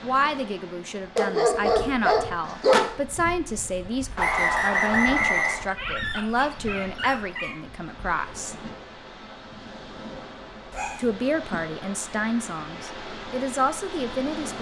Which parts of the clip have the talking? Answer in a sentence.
The talking can be heard from 0.0 to 8.6 s and from 10.9 to 14.5 s.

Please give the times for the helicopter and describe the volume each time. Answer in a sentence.
You can't hear the helicopter here.